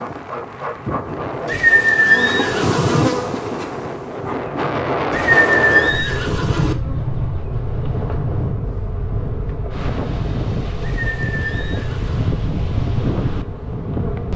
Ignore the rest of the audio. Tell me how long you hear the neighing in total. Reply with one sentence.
The neighing can be heard for 5 seconds in total.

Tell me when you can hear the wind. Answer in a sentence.
You can hear the wind from 0.0 to 14.3 s.